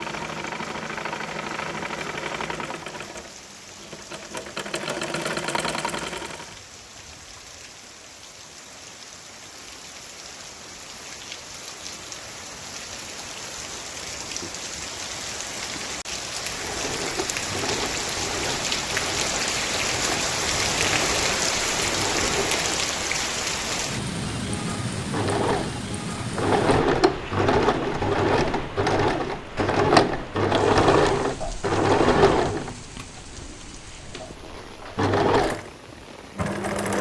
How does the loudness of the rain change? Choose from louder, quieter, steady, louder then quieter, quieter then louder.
louder then quieter.